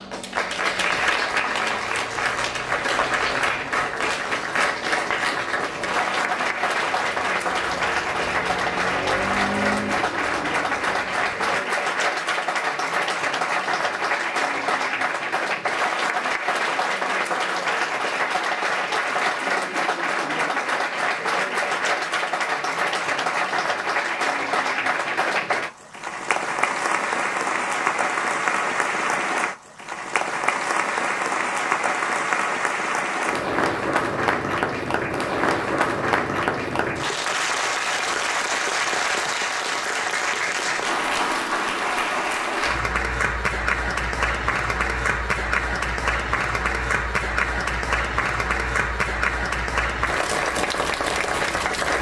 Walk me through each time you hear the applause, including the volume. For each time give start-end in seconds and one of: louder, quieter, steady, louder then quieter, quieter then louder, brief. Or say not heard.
0.0-51.9 steady.